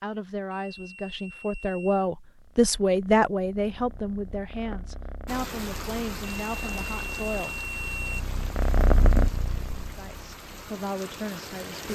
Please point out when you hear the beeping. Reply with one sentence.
The beeping can be heard from 0.5 to 2.1 s and from 6.2 to 8.2 s.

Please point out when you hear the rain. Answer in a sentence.
The rain can be heard from 5.2 to 11.8 s.